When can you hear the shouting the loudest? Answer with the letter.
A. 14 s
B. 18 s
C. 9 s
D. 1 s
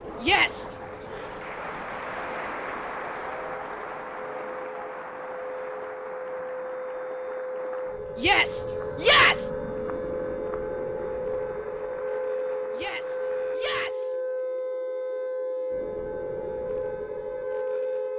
C.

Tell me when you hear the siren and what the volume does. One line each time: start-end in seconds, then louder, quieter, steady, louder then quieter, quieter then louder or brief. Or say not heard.
0.0-18.1 louder.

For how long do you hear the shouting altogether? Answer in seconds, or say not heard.
3 s.